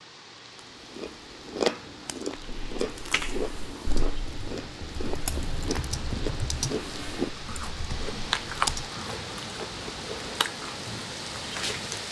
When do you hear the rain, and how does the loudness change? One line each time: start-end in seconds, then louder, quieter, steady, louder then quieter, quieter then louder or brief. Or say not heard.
0.0-12.0 louder.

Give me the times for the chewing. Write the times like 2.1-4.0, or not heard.
0.8-12.0.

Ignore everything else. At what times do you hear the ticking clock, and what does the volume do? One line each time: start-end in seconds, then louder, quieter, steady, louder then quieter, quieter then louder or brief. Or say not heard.
not heard.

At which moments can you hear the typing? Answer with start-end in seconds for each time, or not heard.
2.4-8.9.